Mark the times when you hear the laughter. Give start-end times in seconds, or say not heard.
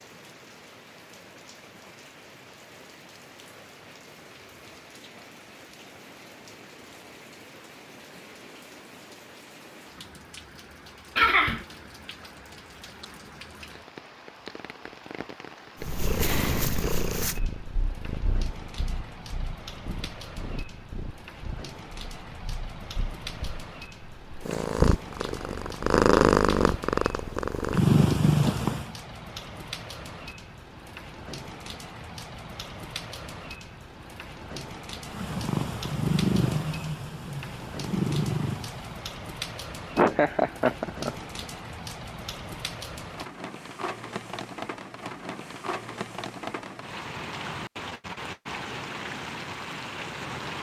11.2-11.7, 40.0-41.1.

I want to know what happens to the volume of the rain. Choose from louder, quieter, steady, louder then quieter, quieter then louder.
louder.